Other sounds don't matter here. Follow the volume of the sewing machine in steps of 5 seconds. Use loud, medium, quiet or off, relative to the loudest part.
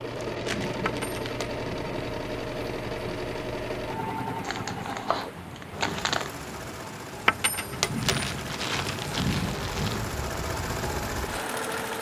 loud, medium, loud.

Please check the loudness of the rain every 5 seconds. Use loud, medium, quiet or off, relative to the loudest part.
medium, loud, loud.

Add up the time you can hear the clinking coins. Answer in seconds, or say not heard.
2 s.